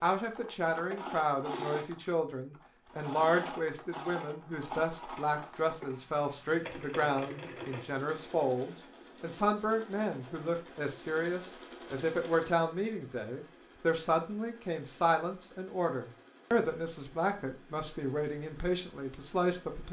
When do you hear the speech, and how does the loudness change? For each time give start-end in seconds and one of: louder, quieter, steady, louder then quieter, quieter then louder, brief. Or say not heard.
0.0-19.8 steady.